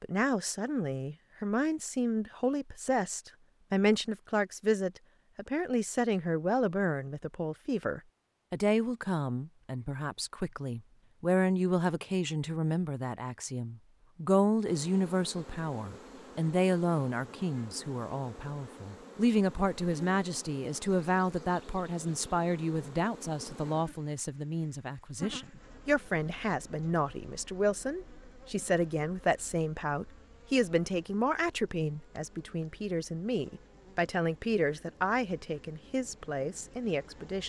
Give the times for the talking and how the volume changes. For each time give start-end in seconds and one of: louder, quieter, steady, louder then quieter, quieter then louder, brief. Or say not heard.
0.0-37.4 steady.